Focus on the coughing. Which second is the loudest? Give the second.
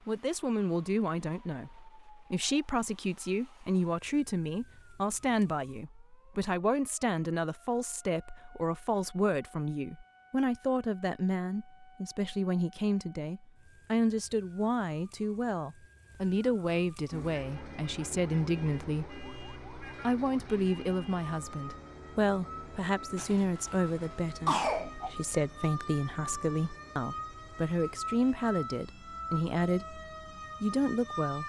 25 s.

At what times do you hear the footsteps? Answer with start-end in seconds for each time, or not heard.
not heard.